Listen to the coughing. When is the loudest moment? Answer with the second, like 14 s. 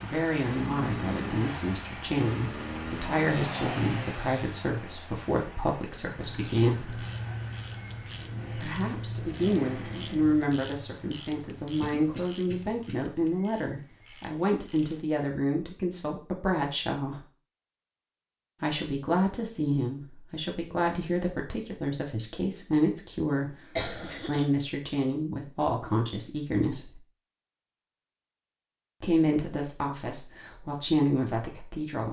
24 s.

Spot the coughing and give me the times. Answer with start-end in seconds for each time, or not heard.
11.8-12.9, 23.3-24.4.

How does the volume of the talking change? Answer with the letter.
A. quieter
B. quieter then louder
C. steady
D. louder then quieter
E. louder
C.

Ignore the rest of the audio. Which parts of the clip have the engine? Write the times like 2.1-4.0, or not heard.
0.0-10.4.